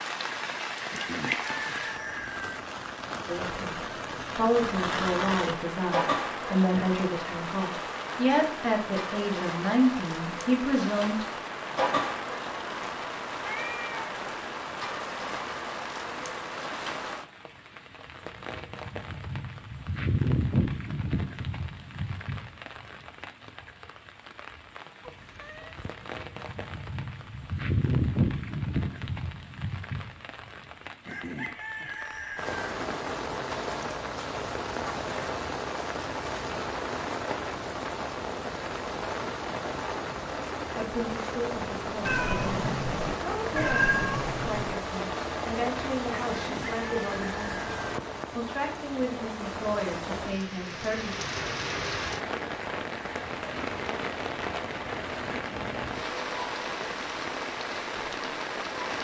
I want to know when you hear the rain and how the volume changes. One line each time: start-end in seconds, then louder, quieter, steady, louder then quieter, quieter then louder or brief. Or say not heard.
0.0-58.9 steady.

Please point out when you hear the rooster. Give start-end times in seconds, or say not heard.
0.9-2.6, 31.1-32.6, 46.2-47.7.